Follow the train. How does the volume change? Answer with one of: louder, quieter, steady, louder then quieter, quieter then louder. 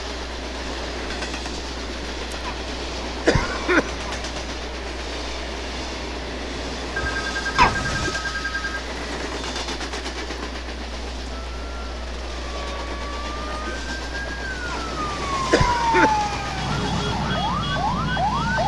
steady.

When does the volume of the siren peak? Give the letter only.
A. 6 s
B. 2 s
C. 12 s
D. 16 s
D.